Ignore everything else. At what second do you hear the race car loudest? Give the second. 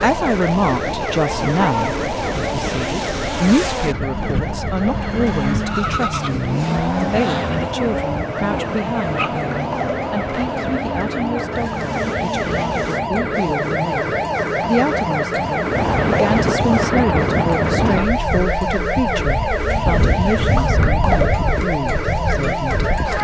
7 s.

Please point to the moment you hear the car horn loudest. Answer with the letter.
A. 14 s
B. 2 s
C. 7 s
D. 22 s
B.